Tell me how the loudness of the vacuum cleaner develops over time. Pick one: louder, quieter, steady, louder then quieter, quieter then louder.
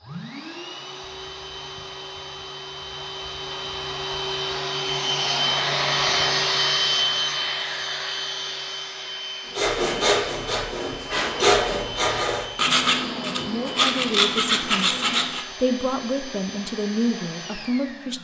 louder then quieter.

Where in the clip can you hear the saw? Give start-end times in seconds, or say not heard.
9.4-15.4.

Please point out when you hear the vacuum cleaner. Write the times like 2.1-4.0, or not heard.
0.0-18.2.